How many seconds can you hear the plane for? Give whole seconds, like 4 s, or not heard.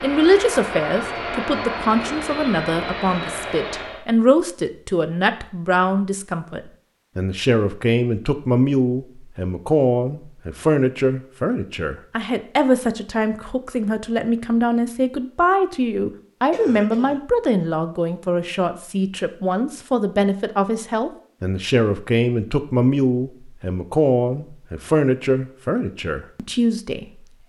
4 s.